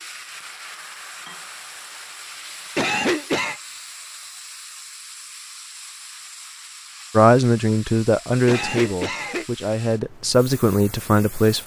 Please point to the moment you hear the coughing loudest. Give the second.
3 s.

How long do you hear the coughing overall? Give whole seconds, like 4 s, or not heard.
2 s.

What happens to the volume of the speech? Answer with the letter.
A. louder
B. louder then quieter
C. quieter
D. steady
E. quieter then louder
E.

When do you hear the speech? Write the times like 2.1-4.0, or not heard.
7.2-11.6.